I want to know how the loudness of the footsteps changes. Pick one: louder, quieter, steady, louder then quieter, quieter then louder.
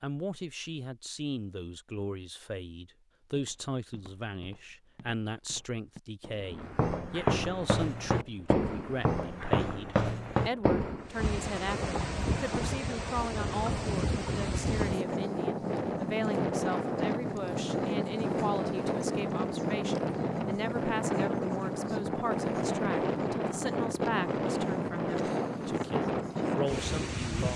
louder.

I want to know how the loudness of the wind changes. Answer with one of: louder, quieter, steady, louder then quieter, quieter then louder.
louder.